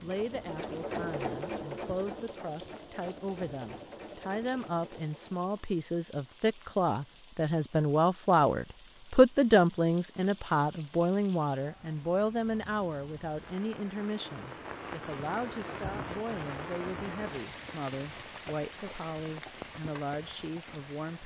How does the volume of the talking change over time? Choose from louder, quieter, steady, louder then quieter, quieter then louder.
louder then quieter.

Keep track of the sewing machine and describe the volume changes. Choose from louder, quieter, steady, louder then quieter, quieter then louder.
quieter.